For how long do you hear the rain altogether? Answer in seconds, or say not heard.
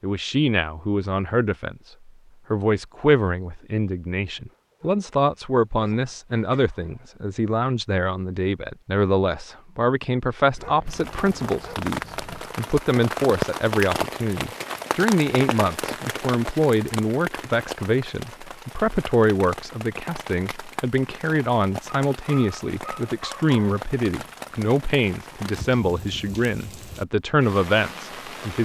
18 s.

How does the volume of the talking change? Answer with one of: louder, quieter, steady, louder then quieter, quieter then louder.
steady.